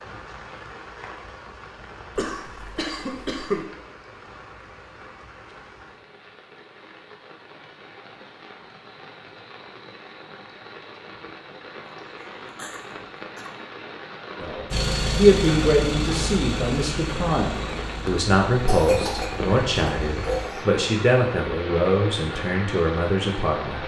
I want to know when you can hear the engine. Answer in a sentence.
The engine can be heard from 14.7 to 20.5 s.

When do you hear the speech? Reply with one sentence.
You can hear the speech from 14.4 to 23.8 s.